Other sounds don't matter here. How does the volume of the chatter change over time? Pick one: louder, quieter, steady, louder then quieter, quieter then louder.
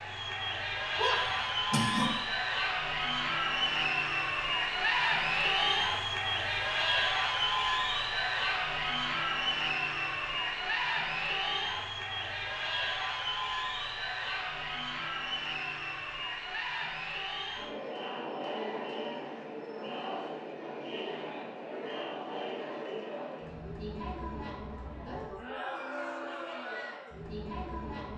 quieter.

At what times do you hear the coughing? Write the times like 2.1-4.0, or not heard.
0.9-2.1.